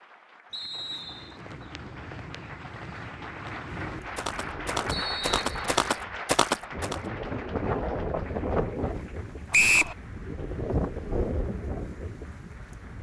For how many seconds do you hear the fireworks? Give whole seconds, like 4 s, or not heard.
not heard.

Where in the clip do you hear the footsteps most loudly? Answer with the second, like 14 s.
6 s.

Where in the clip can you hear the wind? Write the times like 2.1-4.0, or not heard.
3.8-12.9.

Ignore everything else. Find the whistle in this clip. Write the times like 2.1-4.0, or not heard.
0.5-1.4, 4.9-5.8, 9.5-9.9.